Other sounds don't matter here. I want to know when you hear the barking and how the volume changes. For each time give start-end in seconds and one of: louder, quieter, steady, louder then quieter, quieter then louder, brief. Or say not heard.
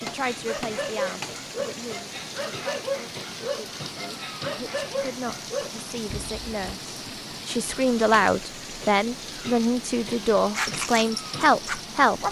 0.0-6.5 steady
10.4-12.2 brief.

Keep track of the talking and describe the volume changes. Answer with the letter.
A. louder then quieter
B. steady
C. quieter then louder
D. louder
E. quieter
C.